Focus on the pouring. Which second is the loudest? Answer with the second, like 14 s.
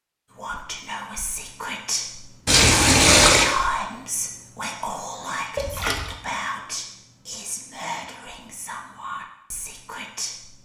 3 s.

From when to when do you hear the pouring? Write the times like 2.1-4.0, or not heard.
2.5-3.5, 5.5-6.2.